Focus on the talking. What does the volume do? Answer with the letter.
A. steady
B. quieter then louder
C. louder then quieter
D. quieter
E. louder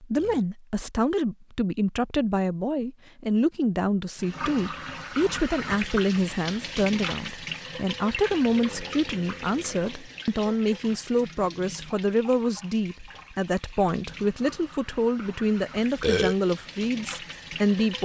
A.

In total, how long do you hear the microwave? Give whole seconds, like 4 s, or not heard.
not heard.